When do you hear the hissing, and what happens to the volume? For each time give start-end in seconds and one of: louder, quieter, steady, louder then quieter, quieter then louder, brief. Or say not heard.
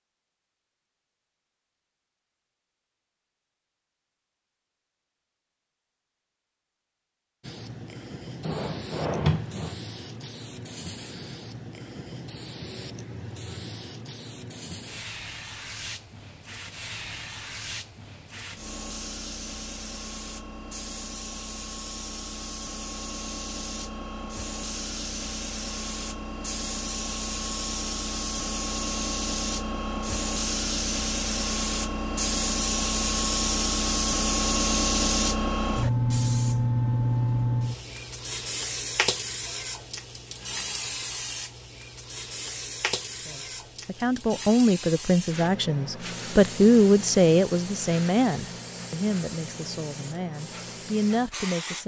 7.4-51.8 louder then quieter.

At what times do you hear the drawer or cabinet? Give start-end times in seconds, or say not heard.
8.4-9.8.